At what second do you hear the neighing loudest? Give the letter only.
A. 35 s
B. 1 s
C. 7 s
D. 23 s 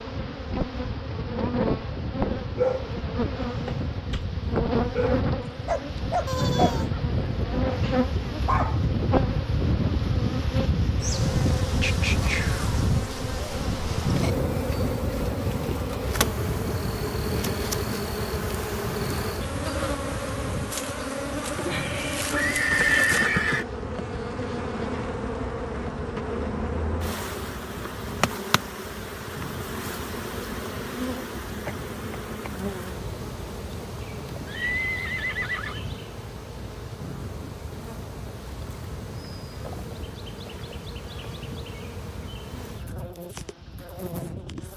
D.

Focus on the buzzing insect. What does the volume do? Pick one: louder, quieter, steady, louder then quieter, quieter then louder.
quieter.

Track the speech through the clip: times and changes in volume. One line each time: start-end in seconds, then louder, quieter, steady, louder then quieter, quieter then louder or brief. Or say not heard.
not heard.